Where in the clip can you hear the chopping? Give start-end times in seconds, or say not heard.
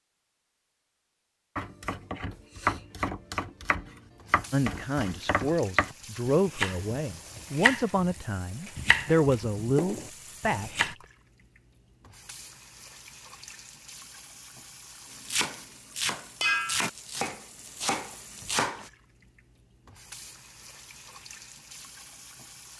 1.6-10.9, 15.2-18.9.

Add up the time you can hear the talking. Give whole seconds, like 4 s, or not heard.
6 s.